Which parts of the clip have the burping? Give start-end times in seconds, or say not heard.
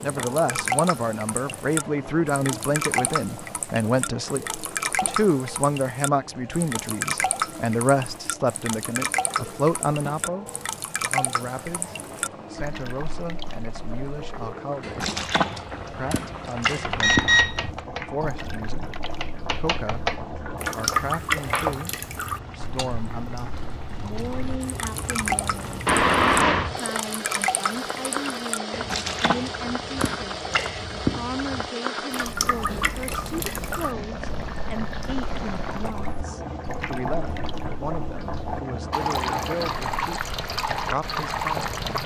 not heard.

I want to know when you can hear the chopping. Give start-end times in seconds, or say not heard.
16.6-21.9.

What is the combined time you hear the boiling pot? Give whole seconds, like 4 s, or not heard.
42 s.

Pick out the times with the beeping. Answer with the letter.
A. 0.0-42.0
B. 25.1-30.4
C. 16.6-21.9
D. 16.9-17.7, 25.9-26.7
D.